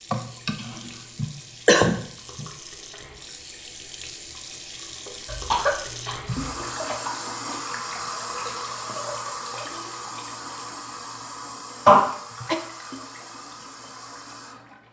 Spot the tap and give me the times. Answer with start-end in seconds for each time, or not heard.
0.0-14.8.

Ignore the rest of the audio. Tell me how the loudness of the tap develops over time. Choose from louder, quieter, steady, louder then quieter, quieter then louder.
louder then quieter.